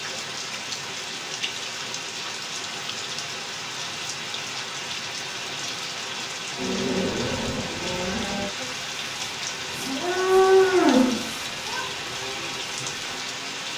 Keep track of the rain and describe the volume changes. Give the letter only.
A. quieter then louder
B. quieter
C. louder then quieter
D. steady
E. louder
D.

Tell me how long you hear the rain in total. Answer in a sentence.
The rain can be heard for 14 seconds in total.